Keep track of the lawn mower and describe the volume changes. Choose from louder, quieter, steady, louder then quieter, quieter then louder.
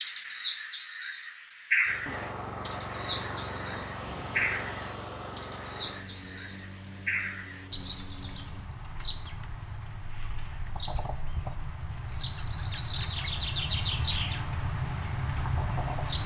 quieter.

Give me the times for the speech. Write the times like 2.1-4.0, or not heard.
not heard.